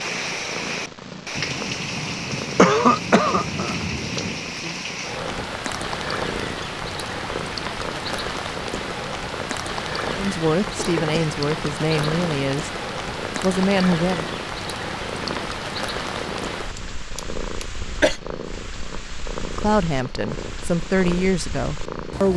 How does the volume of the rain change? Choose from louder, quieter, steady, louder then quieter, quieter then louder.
quieter.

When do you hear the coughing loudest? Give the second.
3 s.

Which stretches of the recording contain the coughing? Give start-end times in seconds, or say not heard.
2.5-3.8, 10.8-11.3, 16.8-18.2.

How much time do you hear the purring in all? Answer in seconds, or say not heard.
22 s.